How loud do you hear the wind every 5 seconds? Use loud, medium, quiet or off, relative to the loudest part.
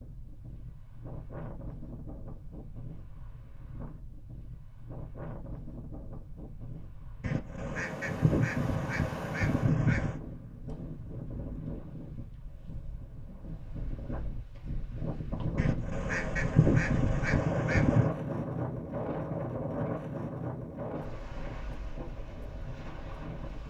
quiet, medium, medium, loud, medium.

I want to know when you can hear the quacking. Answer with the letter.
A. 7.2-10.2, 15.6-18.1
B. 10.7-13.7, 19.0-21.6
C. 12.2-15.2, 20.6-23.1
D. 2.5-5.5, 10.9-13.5
A.